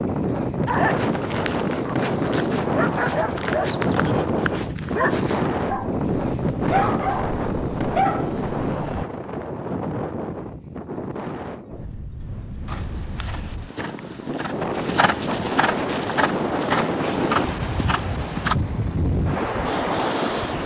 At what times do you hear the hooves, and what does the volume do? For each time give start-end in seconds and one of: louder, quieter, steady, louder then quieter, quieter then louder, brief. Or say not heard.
12.7-18.6 louder.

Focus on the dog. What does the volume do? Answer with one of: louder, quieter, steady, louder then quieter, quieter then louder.
louder.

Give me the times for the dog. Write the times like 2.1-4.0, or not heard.
0.7-9.1.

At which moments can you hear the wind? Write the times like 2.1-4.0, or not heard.
0.0-20.6.